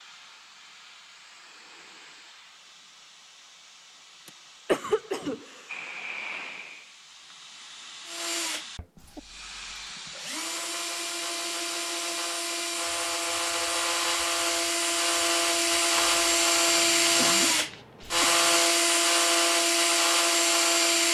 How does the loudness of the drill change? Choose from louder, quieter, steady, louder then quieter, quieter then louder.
louder.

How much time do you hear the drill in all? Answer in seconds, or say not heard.
13 s.